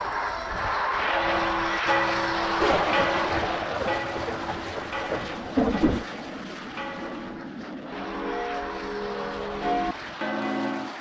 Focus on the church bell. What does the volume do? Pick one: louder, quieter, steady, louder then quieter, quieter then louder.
quieter then louder.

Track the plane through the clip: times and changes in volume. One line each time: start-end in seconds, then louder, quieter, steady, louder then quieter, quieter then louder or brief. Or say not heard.
0.0-10.9 quieter.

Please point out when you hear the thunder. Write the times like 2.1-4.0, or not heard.
2.6-6.0.